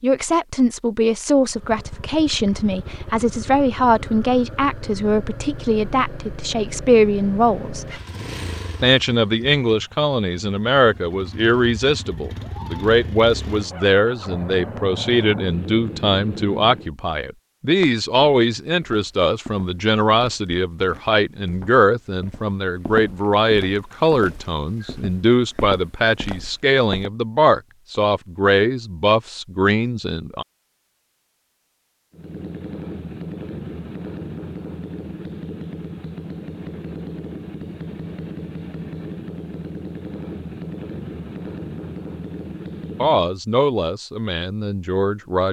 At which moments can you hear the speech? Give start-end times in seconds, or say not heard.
0.0-7.8, 8.8-30.4, 43.0-45.4.